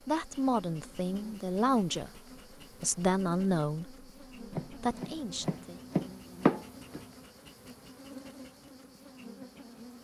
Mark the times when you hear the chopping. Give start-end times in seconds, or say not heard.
4.5-7.2.